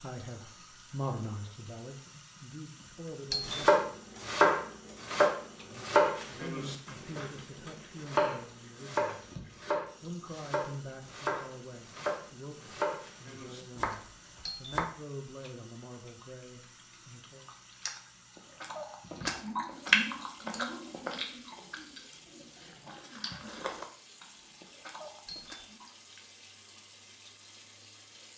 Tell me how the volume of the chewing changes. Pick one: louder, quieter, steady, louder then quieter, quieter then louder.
louder then quieter.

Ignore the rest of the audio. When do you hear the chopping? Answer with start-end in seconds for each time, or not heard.
3.5-14.9.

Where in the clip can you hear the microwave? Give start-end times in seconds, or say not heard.
not heard.